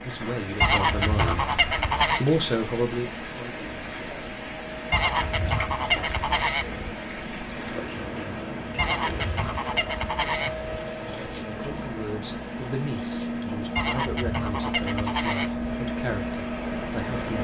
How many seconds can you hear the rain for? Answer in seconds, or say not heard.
17 s.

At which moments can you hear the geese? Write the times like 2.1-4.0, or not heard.
0.6-2.2, 4.9-6.8, 8.8-10.7, 13.8-15.7.